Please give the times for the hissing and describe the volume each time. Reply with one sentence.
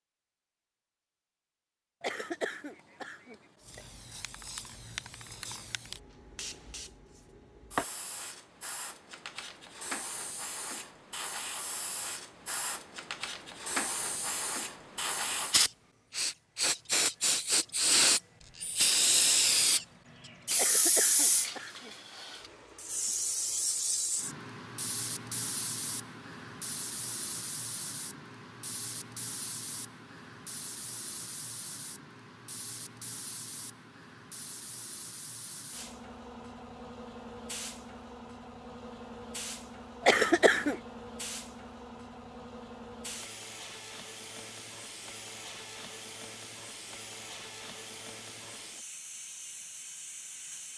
The hissing can be heard from 3.6 to 50.7 s, getting louder then quieter.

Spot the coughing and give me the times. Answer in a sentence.
You can hear the coughing from 2.0 to 3.9 s, from 20.6 to 21.9 s and from 40.0 to 40.8 s.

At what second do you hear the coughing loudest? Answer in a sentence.
The volume of the coughing peaks at 40 seconds.